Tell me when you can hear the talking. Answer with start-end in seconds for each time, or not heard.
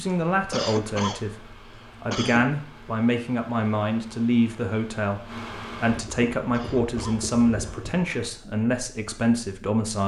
0.0-10.0.